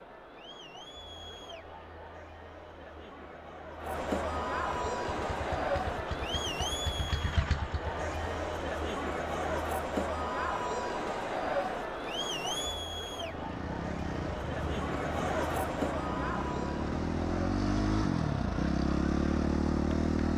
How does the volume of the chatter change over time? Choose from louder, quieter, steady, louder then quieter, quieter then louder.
louder then quieter.